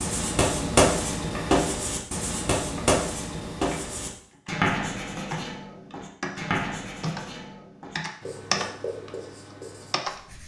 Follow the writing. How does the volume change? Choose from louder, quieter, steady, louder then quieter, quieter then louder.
quieter.